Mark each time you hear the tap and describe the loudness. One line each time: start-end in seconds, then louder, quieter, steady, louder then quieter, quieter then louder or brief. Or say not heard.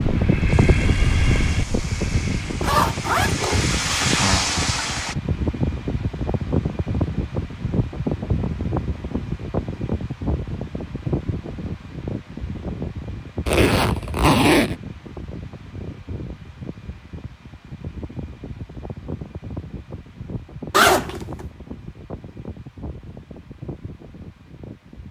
0.3-5.2 louder.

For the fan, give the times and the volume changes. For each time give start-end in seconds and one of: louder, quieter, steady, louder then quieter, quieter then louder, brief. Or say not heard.
0.0-25.0 quieter.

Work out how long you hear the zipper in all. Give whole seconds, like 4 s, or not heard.
4 s.